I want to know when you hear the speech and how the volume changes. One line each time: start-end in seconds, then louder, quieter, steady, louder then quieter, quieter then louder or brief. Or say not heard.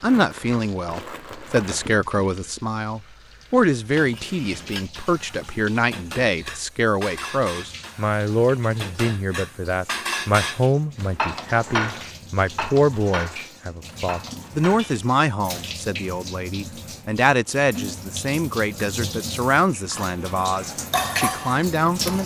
0.0-22.2 steady.